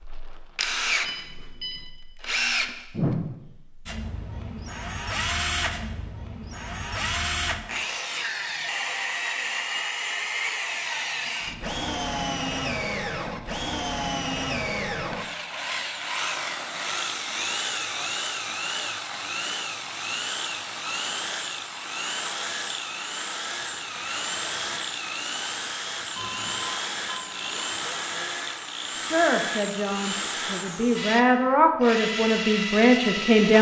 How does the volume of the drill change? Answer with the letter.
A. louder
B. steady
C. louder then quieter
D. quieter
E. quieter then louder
B.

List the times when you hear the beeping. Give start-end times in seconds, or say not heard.
1.0-1.9, 26.1-27.7.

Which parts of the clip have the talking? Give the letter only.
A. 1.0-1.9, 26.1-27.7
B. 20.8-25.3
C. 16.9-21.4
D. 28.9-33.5
D.